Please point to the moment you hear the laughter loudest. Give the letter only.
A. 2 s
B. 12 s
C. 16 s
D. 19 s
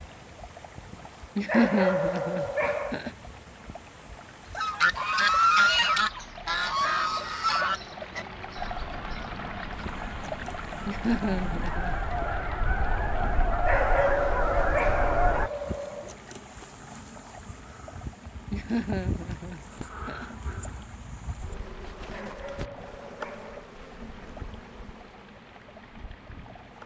A.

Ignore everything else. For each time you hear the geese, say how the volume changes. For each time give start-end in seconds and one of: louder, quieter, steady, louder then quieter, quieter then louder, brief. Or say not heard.
4.5-15.5 quieter then louder.